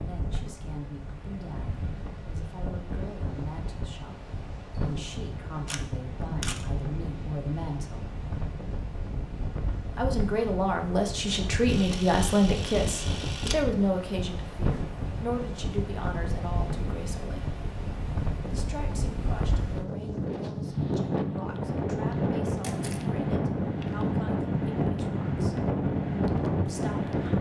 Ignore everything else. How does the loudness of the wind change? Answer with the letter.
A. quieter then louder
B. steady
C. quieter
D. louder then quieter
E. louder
E.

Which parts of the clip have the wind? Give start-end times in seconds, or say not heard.
0.0-27.3.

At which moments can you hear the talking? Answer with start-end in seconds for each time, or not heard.
0.0-8.2, 9.9-17.5, 18.5-25.6, 26.6-27.3.